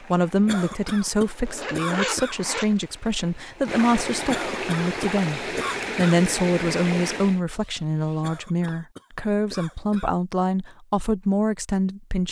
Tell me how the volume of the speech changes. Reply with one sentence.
The loudness of the speech stays about the same.